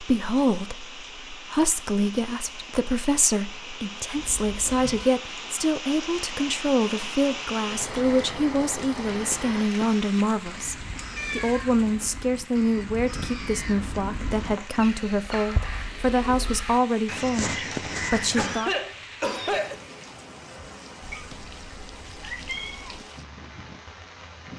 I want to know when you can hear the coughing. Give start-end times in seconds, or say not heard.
18.3-19.8.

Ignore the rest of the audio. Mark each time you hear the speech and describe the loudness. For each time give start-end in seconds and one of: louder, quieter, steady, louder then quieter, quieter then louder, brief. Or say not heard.
0.0-18.7 steady.